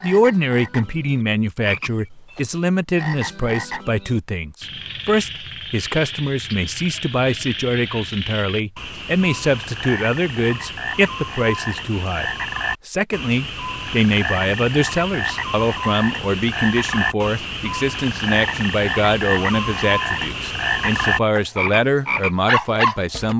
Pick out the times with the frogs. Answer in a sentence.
The frogs can be heard from 0.0 to 23.3 s.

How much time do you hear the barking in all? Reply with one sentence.
The barking can't be heard in this clip.